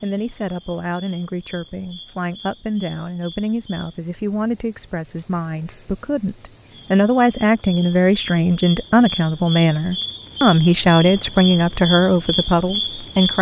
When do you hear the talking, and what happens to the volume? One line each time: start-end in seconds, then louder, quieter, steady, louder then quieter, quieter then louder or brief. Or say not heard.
0.0-13.3 louder.